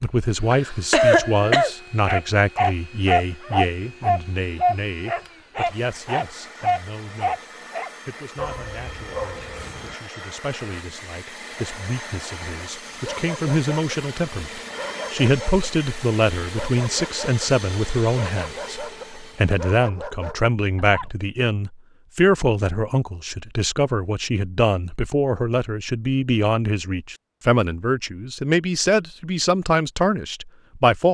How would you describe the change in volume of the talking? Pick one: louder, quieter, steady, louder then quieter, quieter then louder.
quieter then louder.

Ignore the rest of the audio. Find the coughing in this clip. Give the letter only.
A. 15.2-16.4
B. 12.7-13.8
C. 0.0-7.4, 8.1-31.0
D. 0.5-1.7
D.